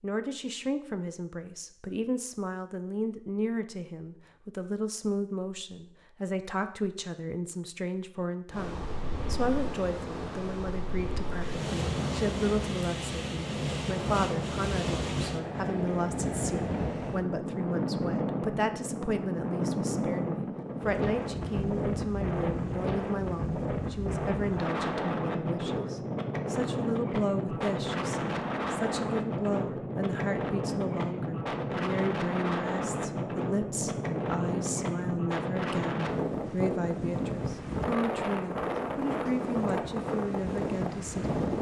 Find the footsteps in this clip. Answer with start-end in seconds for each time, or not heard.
not heard.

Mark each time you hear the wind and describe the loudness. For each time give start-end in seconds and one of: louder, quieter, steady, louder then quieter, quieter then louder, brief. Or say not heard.
8.5-41.5 steady.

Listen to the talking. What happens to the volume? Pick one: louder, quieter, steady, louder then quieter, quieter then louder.
steady.